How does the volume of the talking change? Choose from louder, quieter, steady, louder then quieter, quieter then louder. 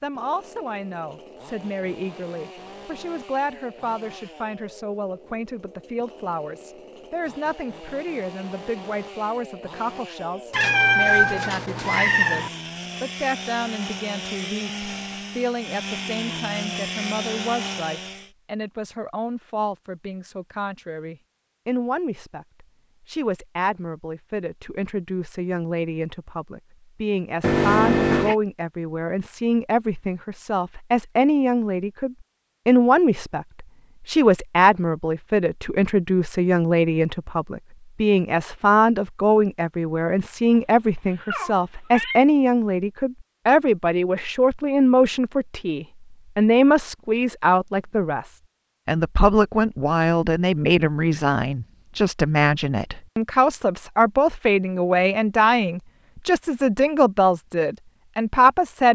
louder.